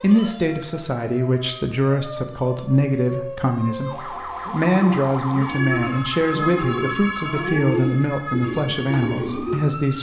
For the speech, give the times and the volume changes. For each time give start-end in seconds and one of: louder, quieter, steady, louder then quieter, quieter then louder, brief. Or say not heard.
0.0-9.9 steady.